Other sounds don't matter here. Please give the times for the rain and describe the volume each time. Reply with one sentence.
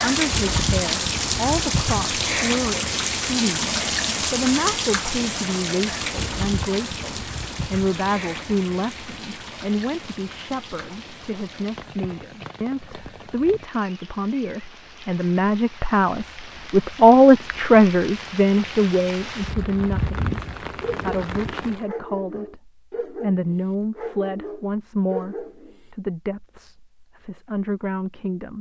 The rain can be heard from 0.0 to 21.9 s, getting quieter then louder.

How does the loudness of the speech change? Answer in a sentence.
The loudness of the speech goes up, then down.